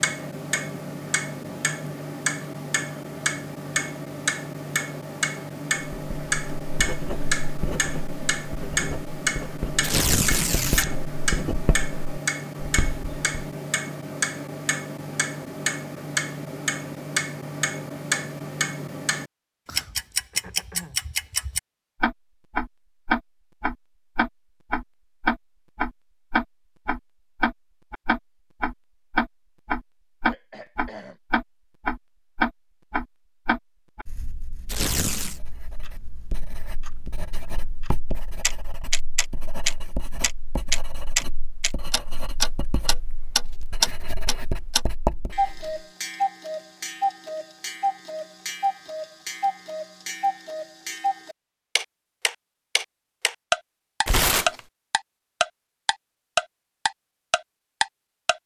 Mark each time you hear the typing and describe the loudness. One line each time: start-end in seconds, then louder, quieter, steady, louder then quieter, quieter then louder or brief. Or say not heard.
not heard.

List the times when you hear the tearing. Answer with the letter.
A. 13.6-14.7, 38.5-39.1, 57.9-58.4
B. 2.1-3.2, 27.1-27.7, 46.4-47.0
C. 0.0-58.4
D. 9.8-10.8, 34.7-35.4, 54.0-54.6
D.